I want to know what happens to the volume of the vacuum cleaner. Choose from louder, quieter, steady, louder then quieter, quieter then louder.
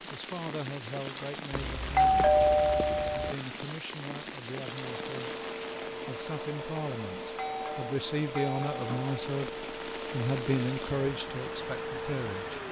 steady.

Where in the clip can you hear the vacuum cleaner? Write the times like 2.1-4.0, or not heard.
4.7-12.6.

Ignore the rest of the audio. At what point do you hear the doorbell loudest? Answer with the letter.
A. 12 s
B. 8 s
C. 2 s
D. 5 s
C.